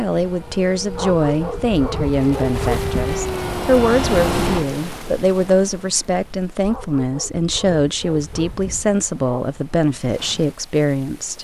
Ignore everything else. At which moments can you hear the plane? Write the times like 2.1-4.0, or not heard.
0.2-4.7.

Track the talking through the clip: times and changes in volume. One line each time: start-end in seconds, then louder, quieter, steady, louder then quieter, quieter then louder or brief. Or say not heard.
0.0-11.3 steady.